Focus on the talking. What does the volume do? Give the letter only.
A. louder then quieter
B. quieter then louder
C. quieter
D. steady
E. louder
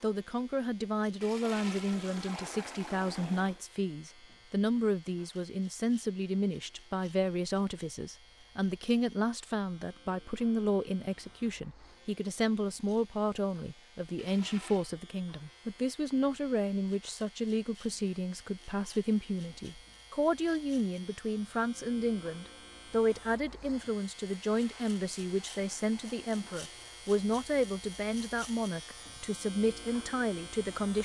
D.